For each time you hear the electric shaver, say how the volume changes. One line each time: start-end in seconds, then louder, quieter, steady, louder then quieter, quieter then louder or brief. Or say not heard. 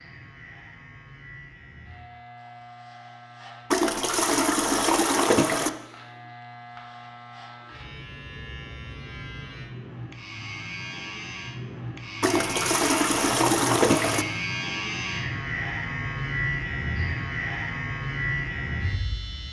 0.0-19.4 louder.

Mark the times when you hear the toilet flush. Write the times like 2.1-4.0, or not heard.
3.7-5.7, 12.2-14.2.